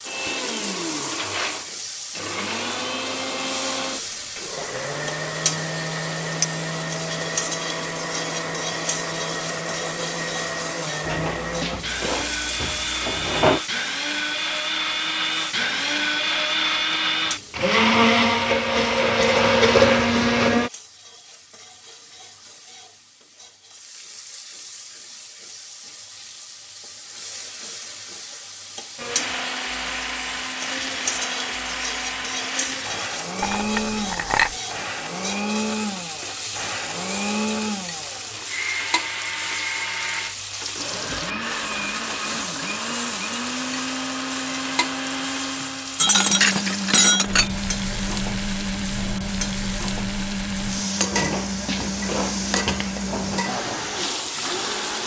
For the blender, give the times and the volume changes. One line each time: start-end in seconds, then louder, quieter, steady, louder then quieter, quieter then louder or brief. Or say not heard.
0.0-20.7 louder
28.9-55.0 steady.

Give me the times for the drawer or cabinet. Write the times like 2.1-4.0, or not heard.
11.0-13.6, 51.1-53.5.